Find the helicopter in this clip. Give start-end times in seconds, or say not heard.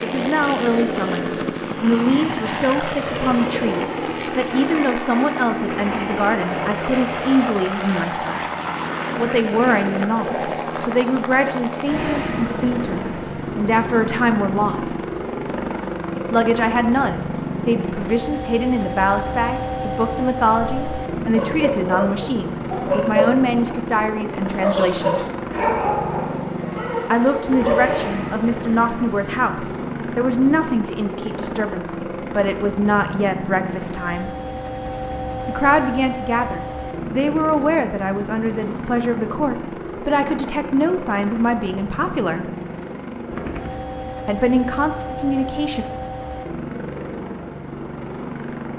0.0-48.7.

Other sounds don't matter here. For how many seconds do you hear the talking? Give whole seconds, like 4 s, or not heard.
39 s.